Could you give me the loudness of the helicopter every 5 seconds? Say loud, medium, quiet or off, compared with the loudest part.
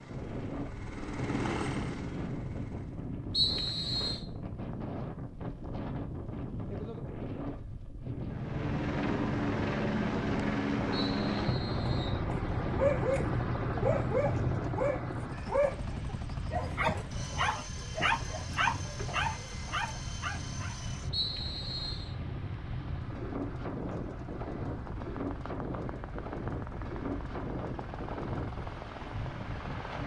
medium, loud, loud, medium, quiet, quiet.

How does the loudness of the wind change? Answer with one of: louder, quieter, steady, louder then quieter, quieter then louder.
steady.